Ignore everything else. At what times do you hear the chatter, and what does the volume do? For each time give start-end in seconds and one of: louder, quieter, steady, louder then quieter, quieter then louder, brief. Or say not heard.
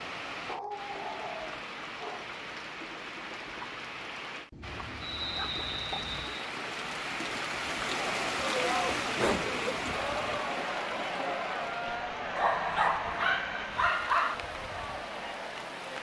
7.8-15.9 quieter.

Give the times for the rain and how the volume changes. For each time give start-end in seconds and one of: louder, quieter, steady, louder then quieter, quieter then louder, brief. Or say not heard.
0.0-15.9 louder then quieter.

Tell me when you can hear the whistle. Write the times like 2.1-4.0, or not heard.
5.0-6.5.